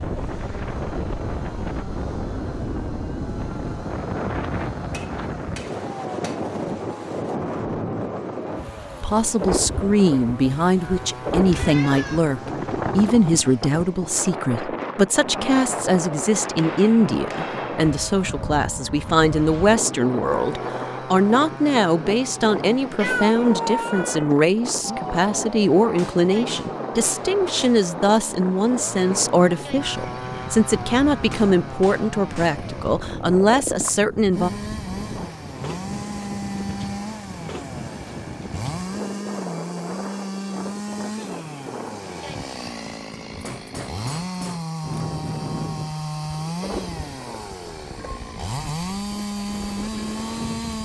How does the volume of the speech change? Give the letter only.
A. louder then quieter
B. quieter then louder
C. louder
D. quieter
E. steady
E.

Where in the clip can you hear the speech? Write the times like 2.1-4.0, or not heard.
9.0-34.5.